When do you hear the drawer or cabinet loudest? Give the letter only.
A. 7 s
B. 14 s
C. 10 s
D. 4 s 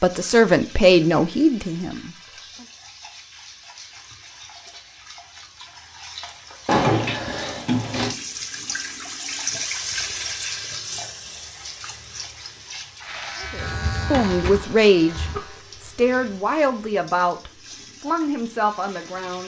A.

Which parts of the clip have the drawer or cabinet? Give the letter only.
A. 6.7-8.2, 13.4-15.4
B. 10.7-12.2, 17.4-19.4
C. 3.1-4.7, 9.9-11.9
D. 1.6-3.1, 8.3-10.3
A.